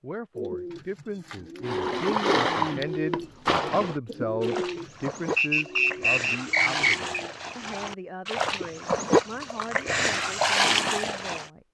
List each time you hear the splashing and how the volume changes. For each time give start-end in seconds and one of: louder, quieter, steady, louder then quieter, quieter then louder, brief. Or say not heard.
1.6-11.5 quieter then louder.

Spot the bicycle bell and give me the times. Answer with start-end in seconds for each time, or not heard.
not heard.